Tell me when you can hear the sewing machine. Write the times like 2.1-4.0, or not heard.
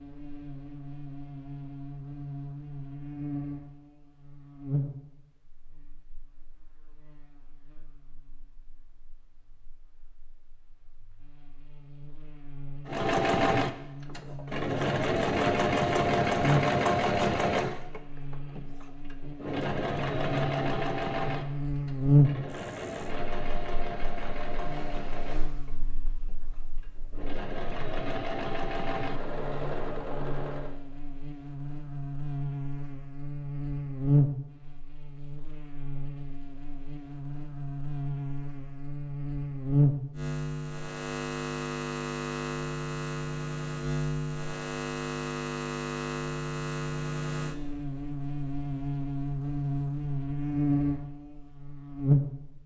12.8-30.8.